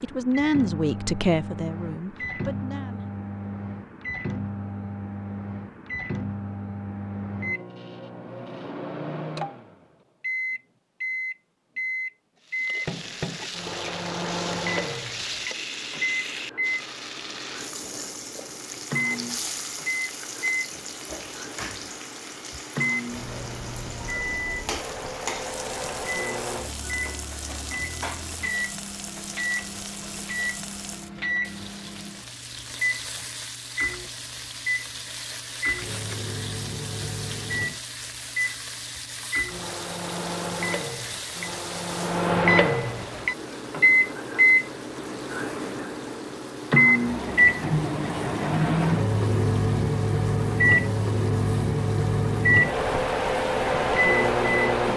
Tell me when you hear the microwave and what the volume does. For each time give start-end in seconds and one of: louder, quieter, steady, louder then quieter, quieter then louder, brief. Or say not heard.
0.0-54.9 louder.